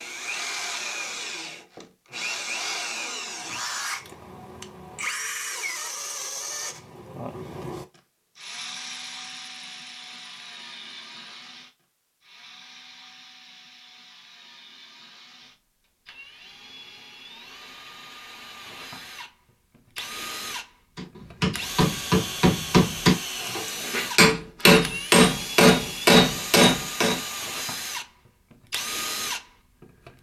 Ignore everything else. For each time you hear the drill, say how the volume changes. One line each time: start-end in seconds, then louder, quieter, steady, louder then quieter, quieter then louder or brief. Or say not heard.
0.0-30.1 quieter then louder.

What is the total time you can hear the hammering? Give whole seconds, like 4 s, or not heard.
6 s.